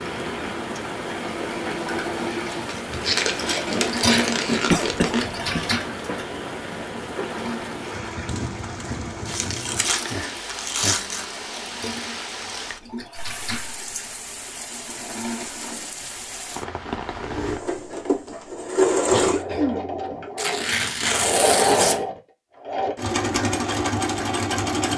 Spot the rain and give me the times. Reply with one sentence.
You can hear the rain from 0.0 to 17.6 s.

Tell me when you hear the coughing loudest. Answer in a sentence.
The loudest moment of the coughing is at 5 seconds.